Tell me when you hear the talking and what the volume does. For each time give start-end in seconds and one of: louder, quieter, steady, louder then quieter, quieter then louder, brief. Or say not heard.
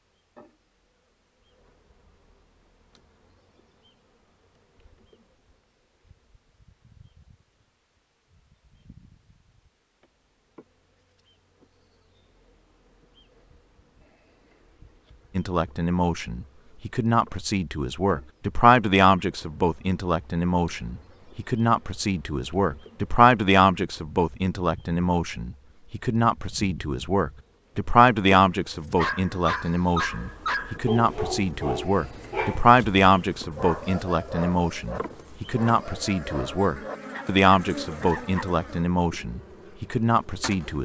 15.3-40.7 steady.